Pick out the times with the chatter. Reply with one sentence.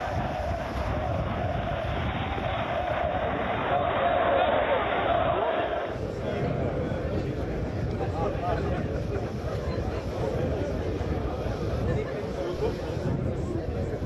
You can hear the chatter from 0.0 to 14.0 s.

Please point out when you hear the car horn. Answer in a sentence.
You can't hear the car horn here.